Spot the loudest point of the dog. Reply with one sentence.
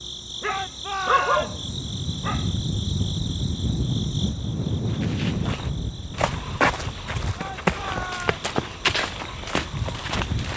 The loudest moment of the dog is at 1 second.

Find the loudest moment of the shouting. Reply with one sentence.
The volume of the shouting peaks at 1 second.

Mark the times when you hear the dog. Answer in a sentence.
You can hear the dog from 0.4 to 2.5 s.